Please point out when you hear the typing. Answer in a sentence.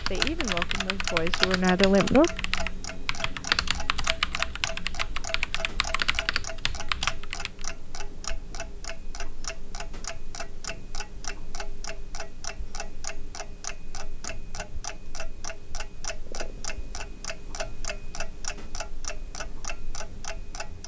The typing can be heard from 0.0 to 7.7 s.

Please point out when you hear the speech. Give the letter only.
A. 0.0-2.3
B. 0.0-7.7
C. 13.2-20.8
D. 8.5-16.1
A.